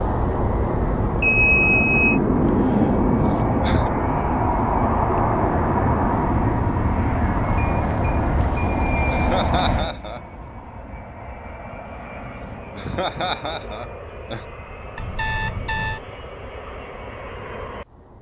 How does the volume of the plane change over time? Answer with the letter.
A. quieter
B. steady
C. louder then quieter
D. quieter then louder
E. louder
A.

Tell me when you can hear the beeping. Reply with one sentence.
You can hear the beeping from 1.2 to 2.2 s, from 7.5 to 9.4 s and from 14.9 to 16.0 s.